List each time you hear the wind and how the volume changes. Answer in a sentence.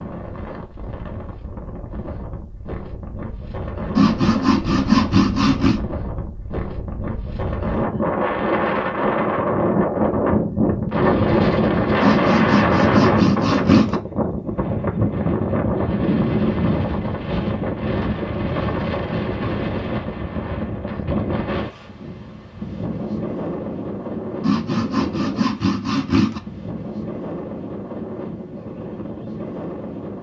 The wind can be heard from 0.0 to 30.1 s, getting louder then quieter.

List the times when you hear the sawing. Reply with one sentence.
You can hear the sawing from 4.0 to 5.8 s, from 12.0 to 13.9 s and from 24.4 to 26.4 s.